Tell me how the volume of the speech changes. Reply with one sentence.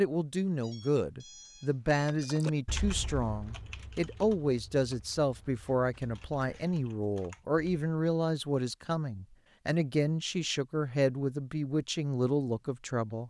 The loudness of the speech stays about the same.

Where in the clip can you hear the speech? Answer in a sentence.
The speech can be heard from 0.0 to 13.2 s.